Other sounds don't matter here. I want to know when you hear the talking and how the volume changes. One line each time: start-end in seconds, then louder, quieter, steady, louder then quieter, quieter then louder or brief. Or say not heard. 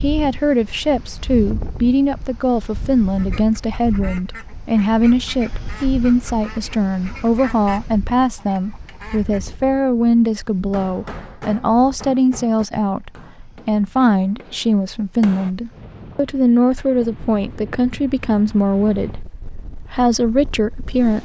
0.0-21.2 steady.